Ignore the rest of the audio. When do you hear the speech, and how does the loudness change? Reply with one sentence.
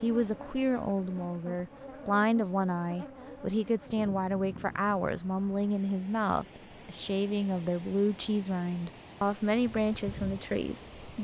The speech can be heard from 0.0 to 11.2 s, at a steady volume.